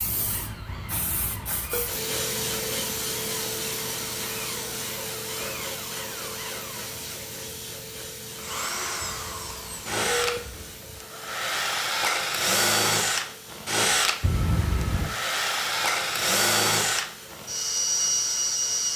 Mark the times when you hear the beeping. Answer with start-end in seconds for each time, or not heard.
0.7-1.9, 9.0-11.0, 14.2-15.1.